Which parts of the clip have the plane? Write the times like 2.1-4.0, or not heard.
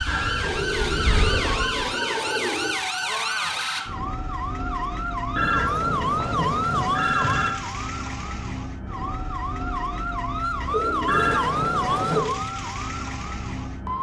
0.0-1.9.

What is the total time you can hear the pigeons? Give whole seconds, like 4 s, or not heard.
5 s.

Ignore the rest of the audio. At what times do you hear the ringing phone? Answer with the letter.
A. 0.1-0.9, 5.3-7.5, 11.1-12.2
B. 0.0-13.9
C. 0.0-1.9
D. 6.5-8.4
A.